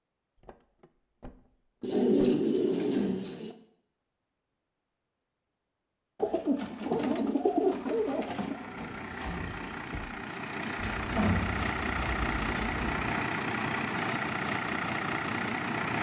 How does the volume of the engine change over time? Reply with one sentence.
The volume of the engine goes up.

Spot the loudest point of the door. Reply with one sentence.
The loudest moment of the door is at 9 seconds.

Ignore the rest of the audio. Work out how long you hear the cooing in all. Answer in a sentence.
You can hear the cooing for 6 seconds altogether.